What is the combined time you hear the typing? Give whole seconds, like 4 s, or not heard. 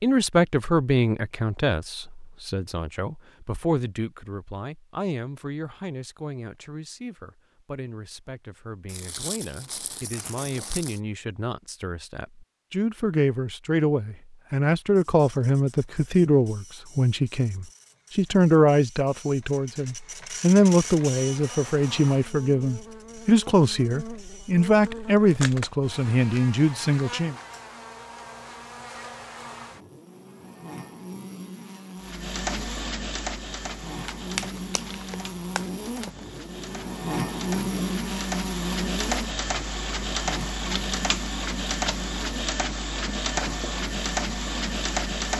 not heard.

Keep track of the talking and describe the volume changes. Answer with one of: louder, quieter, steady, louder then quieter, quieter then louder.
quieter then louder.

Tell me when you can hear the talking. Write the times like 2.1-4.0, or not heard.
0.0-27.4.